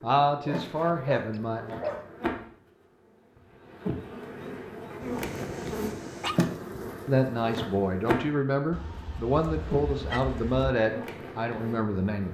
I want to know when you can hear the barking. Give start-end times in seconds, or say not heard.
0.5-2.1, 5.0-6.4, 8.7-10.8.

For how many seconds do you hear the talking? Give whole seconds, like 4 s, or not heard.
7 s.